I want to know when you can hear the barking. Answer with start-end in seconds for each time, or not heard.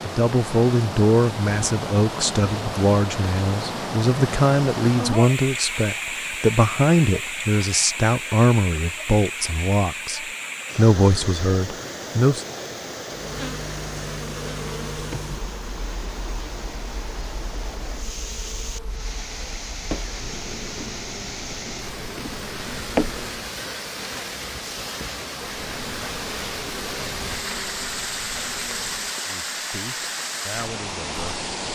not heard.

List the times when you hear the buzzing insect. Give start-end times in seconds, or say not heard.
13.1-23.5, 25.4-29.1.